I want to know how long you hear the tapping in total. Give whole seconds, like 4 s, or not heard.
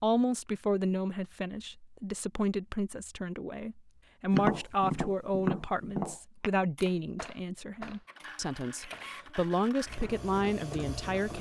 5 s.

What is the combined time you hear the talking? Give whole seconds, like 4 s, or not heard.
11 s.